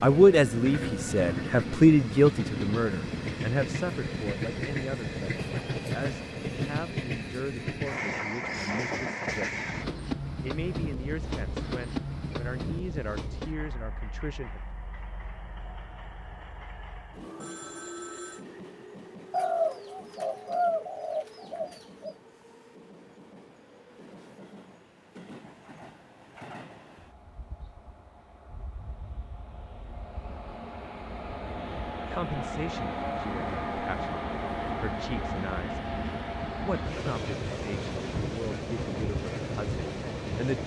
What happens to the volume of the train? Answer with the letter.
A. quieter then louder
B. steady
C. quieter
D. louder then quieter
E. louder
A.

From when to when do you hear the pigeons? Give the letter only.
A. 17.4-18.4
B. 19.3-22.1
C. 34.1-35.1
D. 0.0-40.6
B.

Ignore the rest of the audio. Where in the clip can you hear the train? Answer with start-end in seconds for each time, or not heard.
0.0-40.6.